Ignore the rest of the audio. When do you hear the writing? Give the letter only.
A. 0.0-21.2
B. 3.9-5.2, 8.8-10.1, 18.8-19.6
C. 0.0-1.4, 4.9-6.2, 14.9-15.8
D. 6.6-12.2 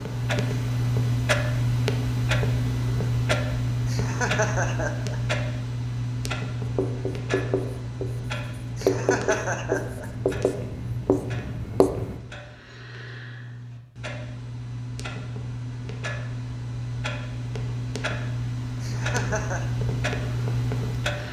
D.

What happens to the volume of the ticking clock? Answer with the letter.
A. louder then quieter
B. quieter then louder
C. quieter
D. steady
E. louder
B.